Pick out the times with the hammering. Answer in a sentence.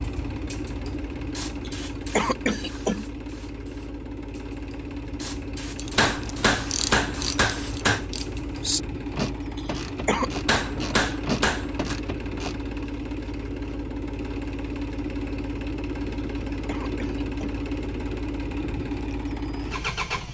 The hammering can be heard from 6.0 to 8.1 s and from 10.4 to 12.0 s.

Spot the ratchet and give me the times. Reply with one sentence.
The ratchet can be heard from 5.8 to 12.7 s.